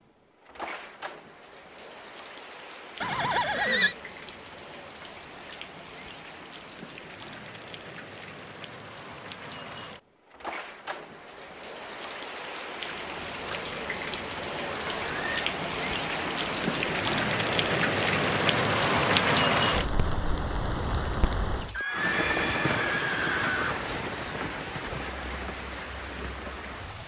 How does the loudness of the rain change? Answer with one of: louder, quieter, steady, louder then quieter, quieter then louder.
louder then quieter.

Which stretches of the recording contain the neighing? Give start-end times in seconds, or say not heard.
3.0-4.0, 14.8-15.4, 21.7-23.8.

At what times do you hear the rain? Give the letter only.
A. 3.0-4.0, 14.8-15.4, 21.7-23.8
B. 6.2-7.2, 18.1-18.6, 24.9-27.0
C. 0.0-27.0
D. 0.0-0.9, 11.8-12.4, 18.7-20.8
C.